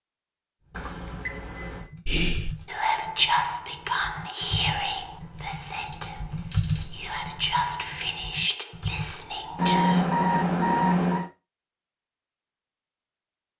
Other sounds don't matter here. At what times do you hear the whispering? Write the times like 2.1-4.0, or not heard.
2.0-10.1.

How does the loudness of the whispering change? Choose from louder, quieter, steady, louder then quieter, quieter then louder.
quieter then louder.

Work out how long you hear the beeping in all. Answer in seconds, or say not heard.
4 s.